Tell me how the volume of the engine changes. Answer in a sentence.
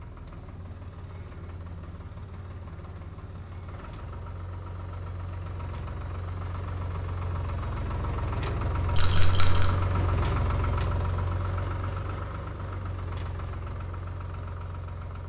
The loudness of the engine goes up, then down.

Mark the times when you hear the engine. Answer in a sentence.
The engine can be heard from 0.0 to 15.2 s.